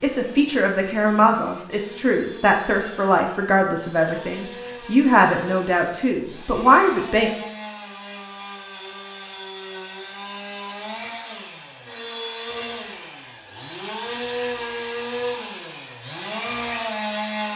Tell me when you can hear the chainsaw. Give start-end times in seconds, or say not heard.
0.0-17.5.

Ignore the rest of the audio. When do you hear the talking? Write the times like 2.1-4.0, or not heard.
0.0-7.3.